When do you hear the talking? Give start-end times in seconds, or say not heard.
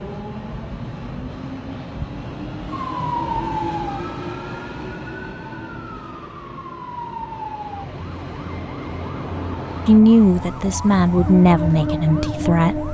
9.8-12.8.